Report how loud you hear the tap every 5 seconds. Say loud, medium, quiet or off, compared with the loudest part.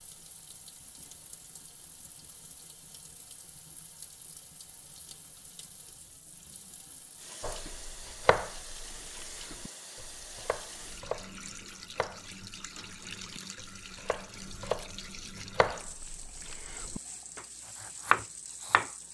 medium, loud, loud, loud.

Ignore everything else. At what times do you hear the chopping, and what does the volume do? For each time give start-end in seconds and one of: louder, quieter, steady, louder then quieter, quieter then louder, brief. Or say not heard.
7.4-18.9 quieter then louder.